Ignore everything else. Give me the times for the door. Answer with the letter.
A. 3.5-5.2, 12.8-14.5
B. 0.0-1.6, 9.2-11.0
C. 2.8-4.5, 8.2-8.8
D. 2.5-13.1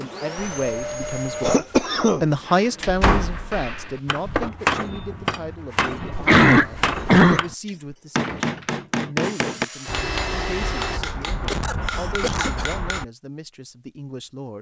C.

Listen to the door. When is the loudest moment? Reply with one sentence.
The volume of the door peaks at 3 seconds.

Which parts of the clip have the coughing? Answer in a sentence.
You can hear the coughing from 0.3 to 2.2 s, from 6.1 to 7.5 s and from 11.2 to 12.7 s.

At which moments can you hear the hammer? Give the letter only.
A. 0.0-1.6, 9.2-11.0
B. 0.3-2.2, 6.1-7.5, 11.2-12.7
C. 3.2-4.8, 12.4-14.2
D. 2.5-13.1
D.